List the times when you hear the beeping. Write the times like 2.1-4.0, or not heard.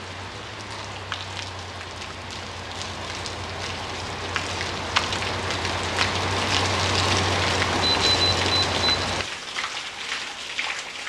7.7-9.1.